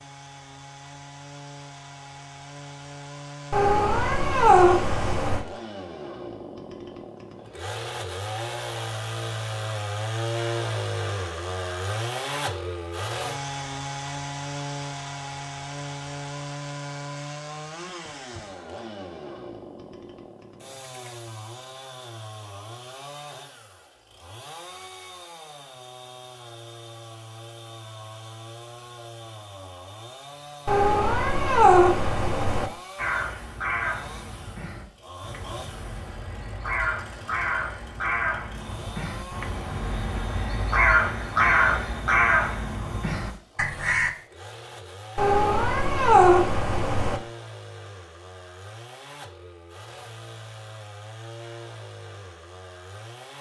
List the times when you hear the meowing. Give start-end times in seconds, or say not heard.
3.5-5.5, 30.6-32.7, 45.1-47.2.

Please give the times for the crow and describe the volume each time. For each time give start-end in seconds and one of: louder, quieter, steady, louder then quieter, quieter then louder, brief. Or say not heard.
33.0-44.1 louder.